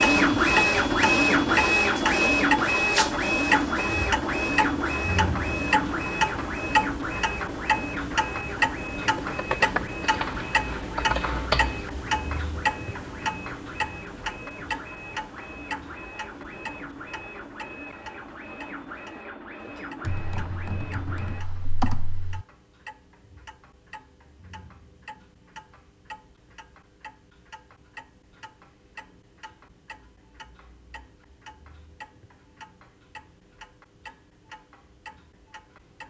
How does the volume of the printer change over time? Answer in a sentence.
The volume of the printer goes down.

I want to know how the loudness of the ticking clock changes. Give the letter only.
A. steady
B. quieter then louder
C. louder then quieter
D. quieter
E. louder
D.